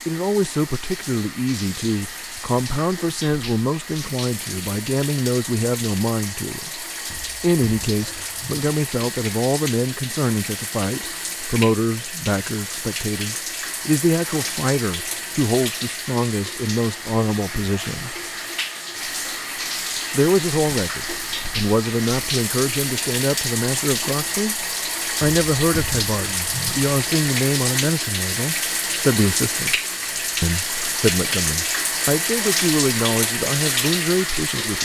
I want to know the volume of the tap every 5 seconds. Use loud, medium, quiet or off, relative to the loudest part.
medium, medium, medium, medium, loud, loud, loud.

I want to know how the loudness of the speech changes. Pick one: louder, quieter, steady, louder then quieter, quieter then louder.
steady.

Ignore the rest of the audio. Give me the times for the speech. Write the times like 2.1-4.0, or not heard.
0.1-6.8, 7.4-18.1, 20.1-24.6, 25.2-29.8, 30.4-34.8.